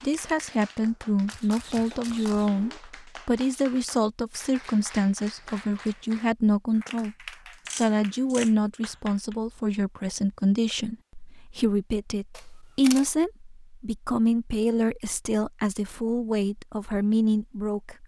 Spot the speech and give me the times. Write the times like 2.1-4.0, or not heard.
0.0-7.2, 7.8-18.0.